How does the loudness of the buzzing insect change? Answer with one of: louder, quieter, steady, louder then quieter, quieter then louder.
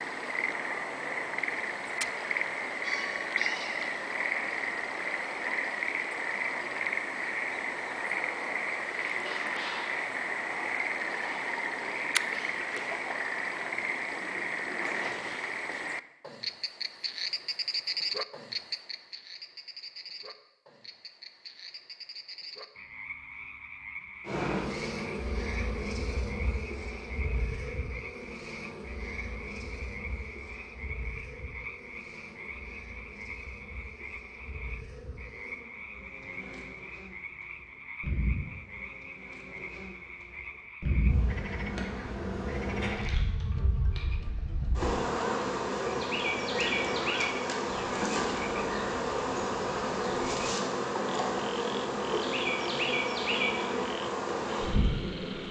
quieter then louder.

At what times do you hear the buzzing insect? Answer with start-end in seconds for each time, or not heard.
24.2-55.4.